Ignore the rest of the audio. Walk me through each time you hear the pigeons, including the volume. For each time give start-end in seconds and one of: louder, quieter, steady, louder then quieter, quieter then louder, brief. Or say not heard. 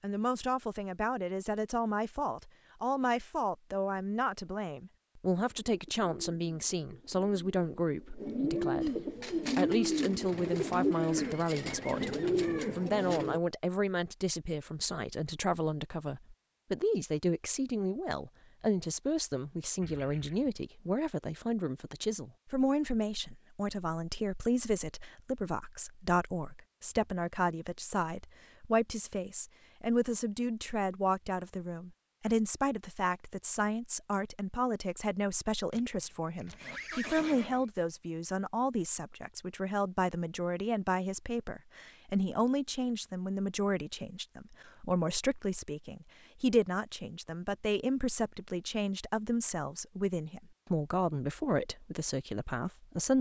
5.3-13.4 louder.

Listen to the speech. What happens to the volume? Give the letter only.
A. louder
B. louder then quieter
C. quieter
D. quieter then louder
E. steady
E.